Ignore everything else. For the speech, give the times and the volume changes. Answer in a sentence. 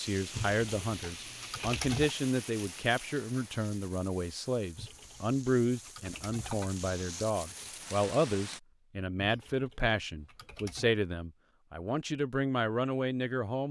You can hear the speech from 0.0 to 13.6 s, at a steady volume.